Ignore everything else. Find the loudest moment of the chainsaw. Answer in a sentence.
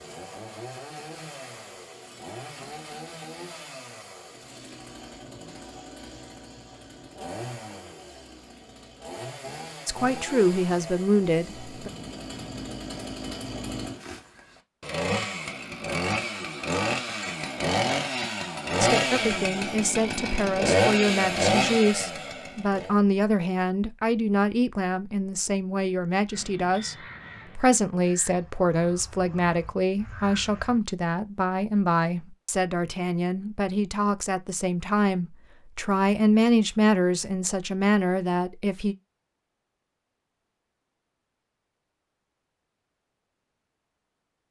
The volume of the chainsaw peaks at 21 seconds.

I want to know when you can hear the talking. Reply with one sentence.
The talking can be heard from 9.8 to 11.9 s, from 18.8 to 26.9 s and from 27.6 to 39.0 s.